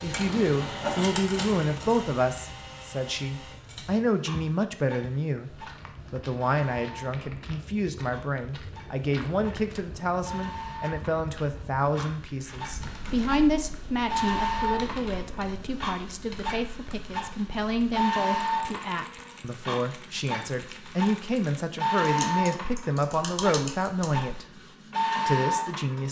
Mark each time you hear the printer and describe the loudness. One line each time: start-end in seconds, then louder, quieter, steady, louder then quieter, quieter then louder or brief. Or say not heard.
0.0-26.0 quieter then louder.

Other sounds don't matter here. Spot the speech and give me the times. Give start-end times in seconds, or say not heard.
0.0-24.4, 25.2-26.0.